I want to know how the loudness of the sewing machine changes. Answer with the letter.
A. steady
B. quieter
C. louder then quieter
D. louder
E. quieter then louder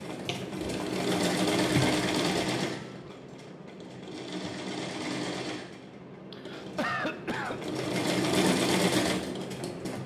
E.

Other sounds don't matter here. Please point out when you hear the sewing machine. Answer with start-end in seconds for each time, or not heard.
0.0-10.0.